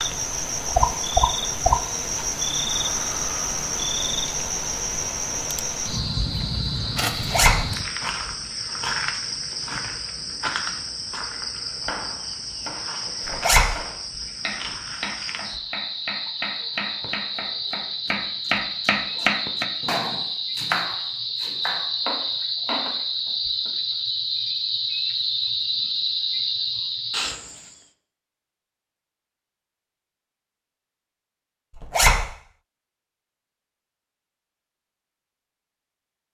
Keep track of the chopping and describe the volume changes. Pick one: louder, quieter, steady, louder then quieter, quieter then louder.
louder then quieter.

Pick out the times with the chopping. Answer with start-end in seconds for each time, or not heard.
11.8-23.7.